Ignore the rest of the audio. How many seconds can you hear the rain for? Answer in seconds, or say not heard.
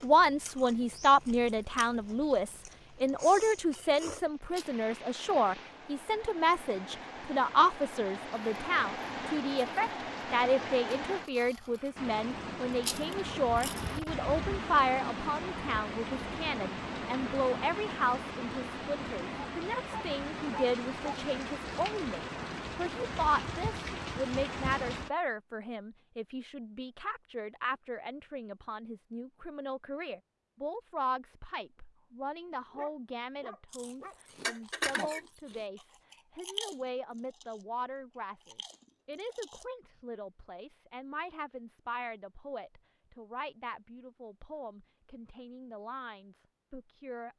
25 s.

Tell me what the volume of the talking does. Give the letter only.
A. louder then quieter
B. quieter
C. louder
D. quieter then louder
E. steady
B.